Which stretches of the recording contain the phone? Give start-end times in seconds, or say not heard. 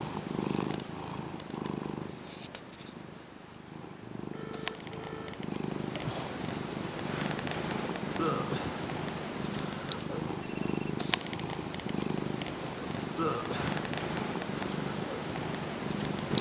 4.2-5.5, 10.4-10.9.